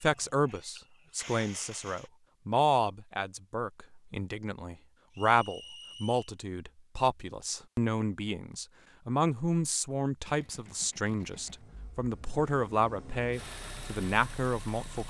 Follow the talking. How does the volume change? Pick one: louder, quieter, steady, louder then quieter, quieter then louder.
steady.